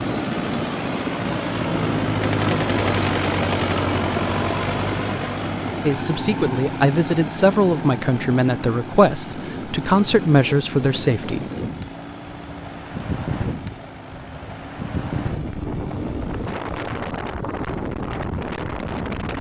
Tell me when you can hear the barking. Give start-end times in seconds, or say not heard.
not heard.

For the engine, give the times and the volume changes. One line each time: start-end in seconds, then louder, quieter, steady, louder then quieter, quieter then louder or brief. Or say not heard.
0.0-16.9 quieter.